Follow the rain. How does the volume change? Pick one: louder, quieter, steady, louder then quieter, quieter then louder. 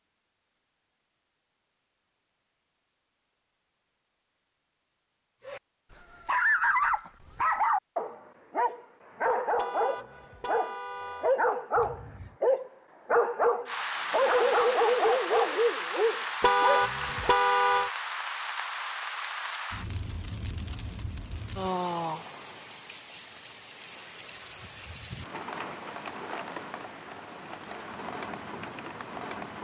quieter.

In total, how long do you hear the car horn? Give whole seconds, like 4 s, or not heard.
3 s.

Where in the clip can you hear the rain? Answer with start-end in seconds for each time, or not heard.
13.7-29.5.